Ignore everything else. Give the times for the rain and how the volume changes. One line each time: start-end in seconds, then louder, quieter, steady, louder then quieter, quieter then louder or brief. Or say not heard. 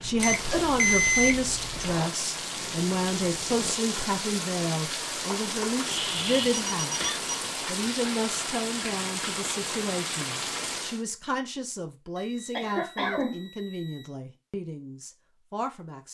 0.0-11.1 steady.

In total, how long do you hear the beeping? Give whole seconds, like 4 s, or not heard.
4 s.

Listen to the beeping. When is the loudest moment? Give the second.
1 s.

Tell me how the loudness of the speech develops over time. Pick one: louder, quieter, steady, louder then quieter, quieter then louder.
quieter.